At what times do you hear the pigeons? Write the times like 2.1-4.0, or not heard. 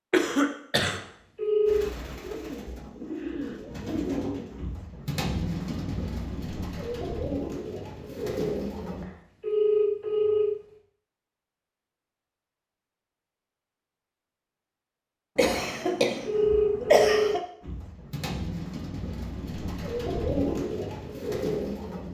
1.6-9.1, 17.6-22.0.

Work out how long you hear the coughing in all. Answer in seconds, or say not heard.
3 s.